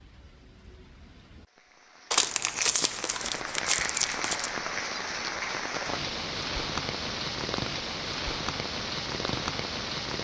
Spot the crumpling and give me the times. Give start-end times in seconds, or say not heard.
2.1-4.5.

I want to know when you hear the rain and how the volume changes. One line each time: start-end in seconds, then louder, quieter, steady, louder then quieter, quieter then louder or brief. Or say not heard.
0.0-10.1 louder.